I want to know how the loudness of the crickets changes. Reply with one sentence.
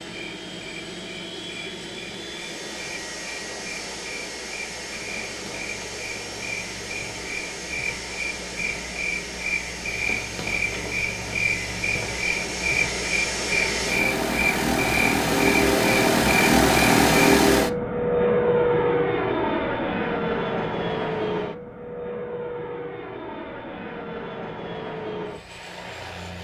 The volume of the crickets goes up.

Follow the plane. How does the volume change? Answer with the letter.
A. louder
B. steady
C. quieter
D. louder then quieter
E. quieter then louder
D.